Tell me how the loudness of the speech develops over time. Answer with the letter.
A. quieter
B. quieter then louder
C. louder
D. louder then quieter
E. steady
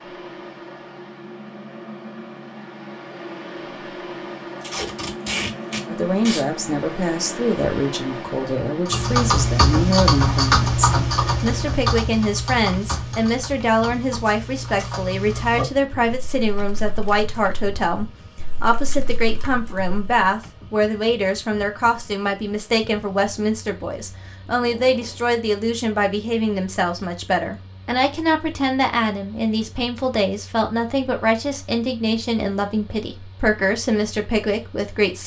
E.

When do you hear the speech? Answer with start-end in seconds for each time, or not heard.
5.8-35.2.